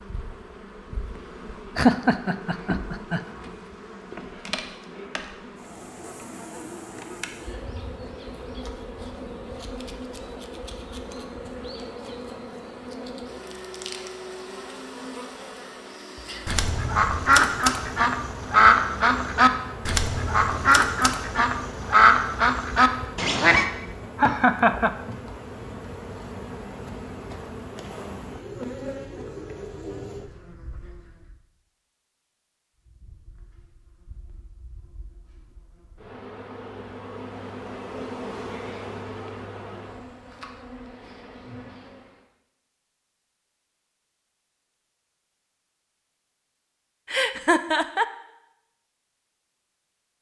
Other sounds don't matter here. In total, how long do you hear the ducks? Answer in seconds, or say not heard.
7 s.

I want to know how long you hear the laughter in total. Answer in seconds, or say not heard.
3 s.